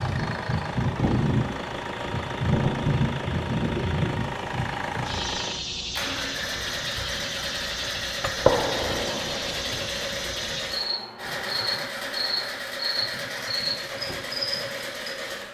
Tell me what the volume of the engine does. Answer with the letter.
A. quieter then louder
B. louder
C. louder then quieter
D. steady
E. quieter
D.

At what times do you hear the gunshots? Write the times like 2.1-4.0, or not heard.
8.2-9.8.